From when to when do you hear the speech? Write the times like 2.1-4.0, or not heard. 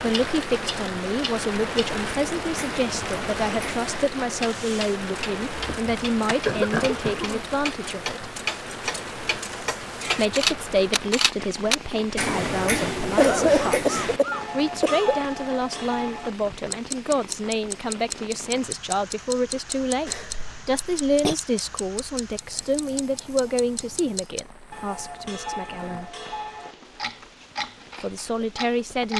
0.0-8.2, 10.1-26.1, 28.0-29.1.